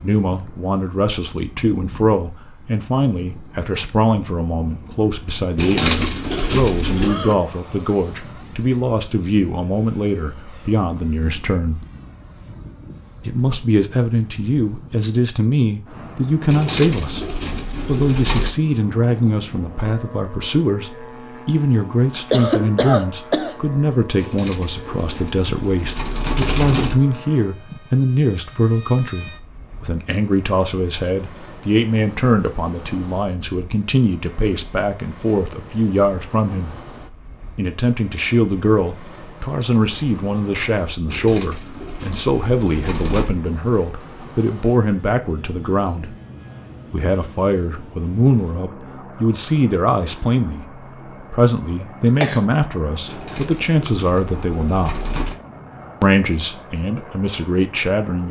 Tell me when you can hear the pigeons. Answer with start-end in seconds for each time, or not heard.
5.5-7.2, 16.4-18.5, 24.1-26.9, 41.0-43.3, 53.0-55.4.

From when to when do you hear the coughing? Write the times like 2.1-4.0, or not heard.
5.8-7.4, 21.9-23.6, 51.8-52.4.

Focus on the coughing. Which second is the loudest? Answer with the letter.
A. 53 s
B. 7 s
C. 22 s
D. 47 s
C.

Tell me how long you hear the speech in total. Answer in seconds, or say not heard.
54 s.